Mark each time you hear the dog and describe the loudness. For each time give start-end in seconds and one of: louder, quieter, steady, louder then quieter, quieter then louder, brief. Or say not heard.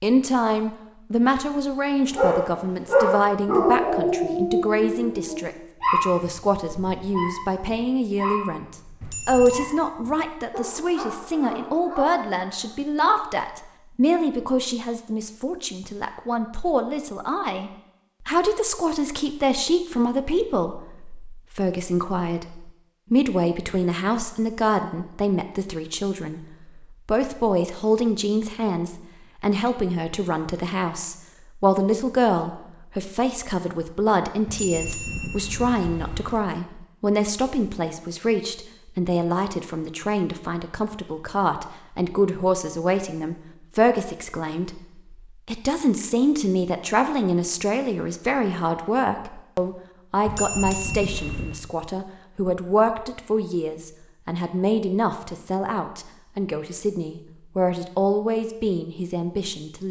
2.1-12.8 quieter.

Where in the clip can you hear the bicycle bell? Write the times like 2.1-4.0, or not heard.
9.0-9.7, 34.5-36.5, 50.2-51.6.